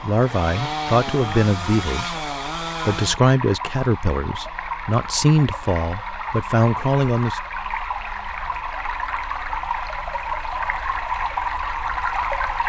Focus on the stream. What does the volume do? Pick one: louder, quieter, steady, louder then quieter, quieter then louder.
louder.